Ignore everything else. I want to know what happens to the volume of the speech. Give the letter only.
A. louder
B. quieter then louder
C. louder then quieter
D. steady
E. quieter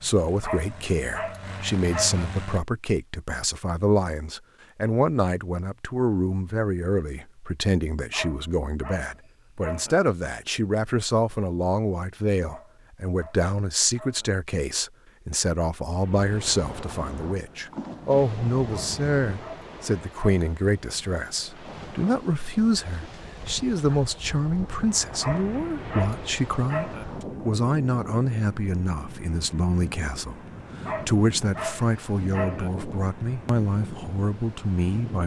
D.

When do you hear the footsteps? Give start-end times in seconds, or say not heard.
not heard.